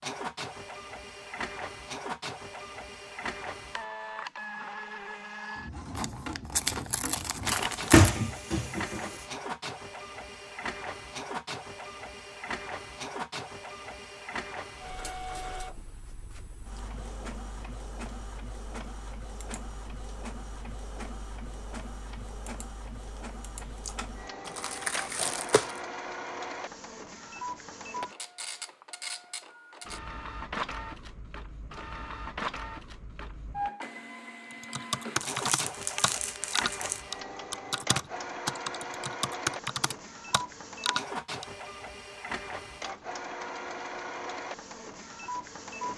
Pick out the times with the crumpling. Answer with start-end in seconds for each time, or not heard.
6.0-8.2, 24.4-25.8, 35.2-37.0.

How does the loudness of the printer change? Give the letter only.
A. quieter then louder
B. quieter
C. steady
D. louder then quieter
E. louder
C.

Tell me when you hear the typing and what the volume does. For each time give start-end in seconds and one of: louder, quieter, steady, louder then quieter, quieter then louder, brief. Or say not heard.
34.5-41.5 steady.